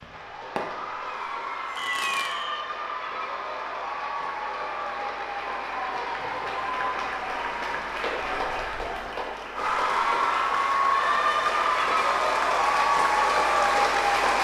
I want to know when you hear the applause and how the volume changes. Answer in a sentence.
The applause can be heard from 0.0 to 14.3 s, getting louder.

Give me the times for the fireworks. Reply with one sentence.
The fireworks can be heard from 0.0 to 2.5 s.